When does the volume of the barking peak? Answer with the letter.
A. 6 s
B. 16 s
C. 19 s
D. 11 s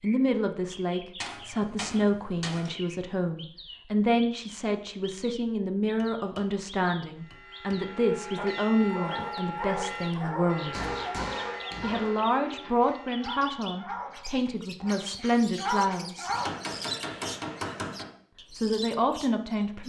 B.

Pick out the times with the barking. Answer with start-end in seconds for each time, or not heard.
8.3-16.6.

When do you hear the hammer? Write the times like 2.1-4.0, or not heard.
1.2-2.7, 6.0-6.5, 7.3-8.0, 10.7-12.8, 16.3-18.1.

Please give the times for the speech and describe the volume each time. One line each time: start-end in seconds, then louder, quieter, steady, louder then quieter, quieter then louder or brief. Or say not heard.
0.0-10.8 steady
11.8-16.3 quieter then louder
18.5-19.8 brief.